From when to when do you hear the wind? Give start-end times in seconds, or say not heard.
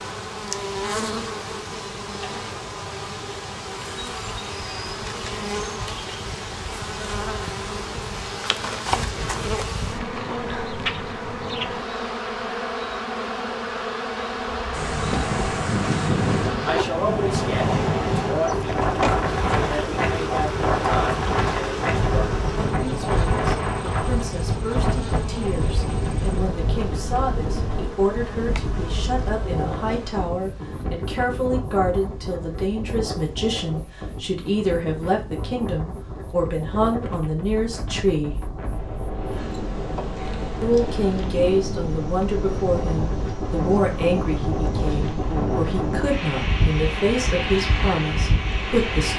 14.7-49.1.